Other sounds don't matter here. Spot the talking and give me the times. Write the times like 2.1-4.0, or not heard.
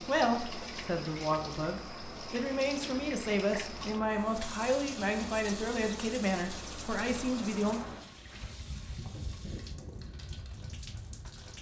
0.0-7.8.